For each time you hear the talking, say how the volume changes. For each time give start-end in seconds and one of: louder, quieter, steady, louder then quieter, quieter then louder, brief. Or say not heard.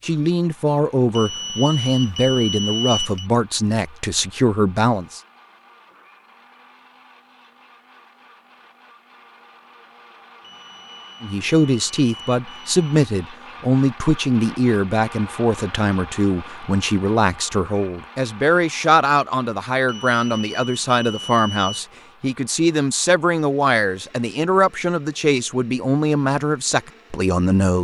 0.0-5.2 steady
11.2-27.7 steady.